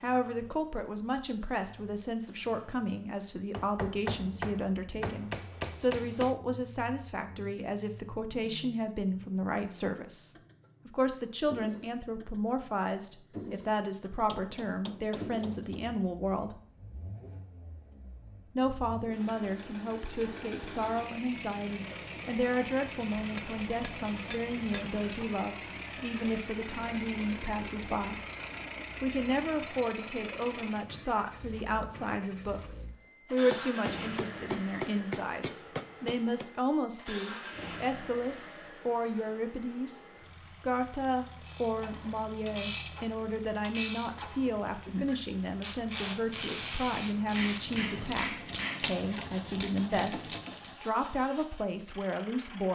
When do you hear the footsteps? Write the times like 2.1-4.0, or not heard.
not heard.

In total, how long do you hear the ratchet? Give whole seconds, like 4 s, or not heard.
9 s.